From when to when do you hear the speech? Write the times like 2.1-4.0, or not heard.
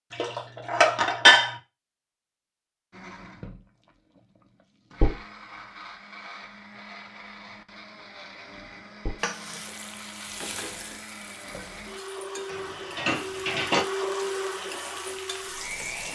not heard.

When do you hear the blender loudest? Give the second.
14 s.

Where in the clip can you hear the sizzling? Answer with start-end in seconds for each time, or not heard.
9.2-16.1.